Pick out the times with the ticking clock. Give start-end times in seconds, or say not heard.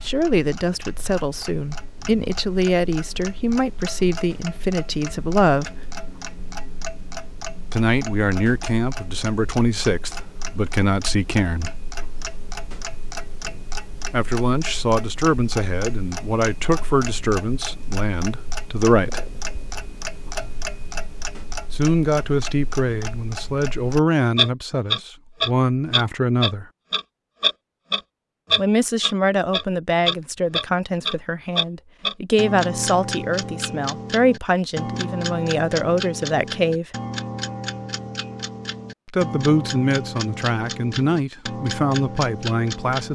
0.0-43.0.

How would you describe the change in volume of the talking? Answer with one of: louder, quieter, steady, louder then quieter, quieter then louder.
steady.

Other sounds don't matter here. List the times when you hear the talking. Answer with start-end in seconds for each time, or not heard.
0.0-5.9, 7.7-11.8, 14.1-19.2, 21.7-26.6, 28.6-36.9, 39.0-43.0.